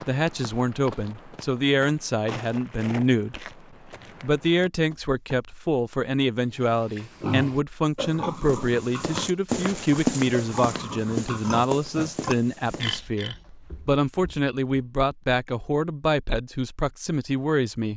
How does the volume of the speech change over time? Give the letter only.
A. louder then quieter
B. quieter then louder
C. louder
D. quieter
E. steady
E.